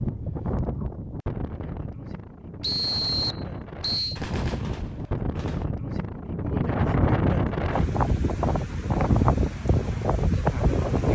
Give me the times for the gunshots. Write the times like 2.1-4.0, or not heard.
4.2-5.7.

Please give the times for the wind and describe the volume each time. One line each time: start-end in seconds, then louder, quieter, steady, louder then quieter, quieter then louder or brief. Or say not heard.
0.0-11.1 louder.